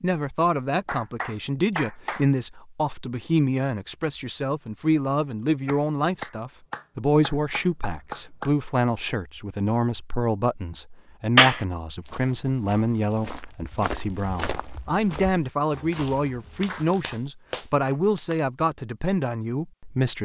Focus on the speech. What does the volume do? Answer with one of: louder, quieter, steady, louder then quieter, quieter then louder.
steady.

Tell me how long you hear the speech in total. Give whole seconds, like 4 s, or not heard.
20 s.